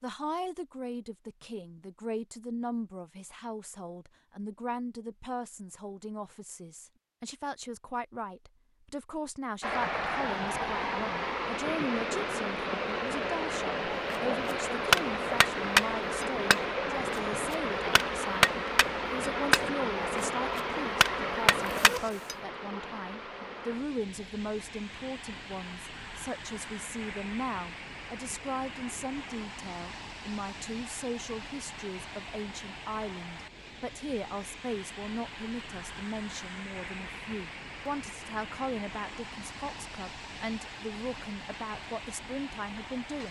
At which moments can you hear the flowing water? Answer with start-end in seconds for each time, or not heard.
9.6-43.2.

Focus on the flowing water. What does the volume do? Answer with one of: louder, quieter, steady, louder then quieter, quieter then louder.
quieter.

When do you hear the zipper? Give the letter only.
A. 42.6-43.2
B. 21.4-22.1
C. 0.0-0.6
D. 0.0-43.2
B.